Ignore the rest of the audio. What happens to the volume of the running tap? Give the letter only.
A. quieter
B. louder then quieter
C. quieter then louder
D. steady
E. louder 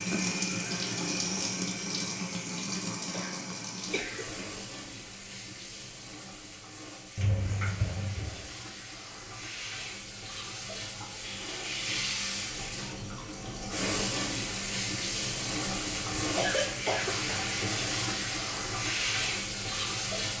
C.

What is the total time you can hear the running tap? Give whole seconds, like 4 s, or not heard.
20 s.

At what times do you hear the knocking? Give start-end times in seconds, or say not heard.
not heard.